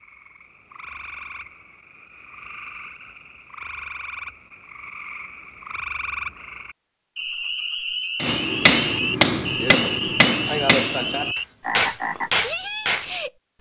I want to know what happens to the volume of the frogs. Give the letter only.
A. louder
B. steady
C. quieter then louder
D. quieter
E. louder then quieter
A.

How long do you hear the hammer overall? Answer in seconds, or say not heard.
5 s.